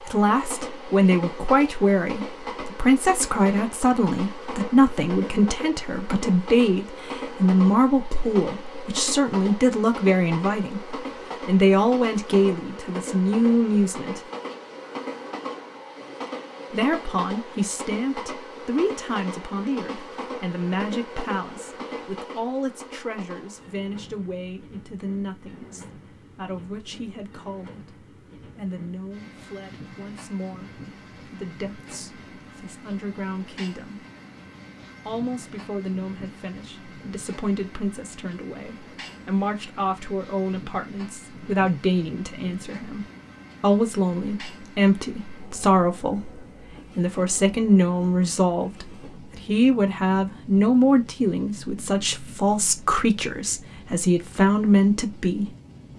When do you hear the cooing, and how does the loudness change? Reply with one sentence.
You can't hear the cooing here.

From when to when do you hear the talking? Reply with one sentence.
You can hear the talking from 0.1 to 14.2 s, from 16.7 to 34.0 s and from 35.0 to 55.5 s.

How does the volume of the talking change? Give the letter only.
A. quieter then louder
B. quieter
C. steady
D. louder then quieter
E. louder
A.